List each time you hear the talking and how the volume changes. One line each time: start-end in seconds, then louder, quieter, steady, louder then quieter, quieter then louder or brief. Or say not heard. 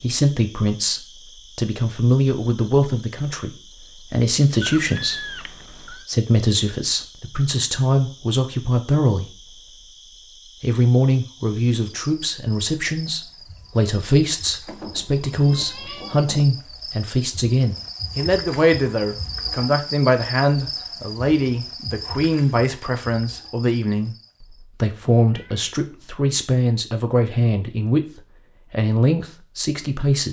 0.0-9.6 steady
10.6-30.2 steady.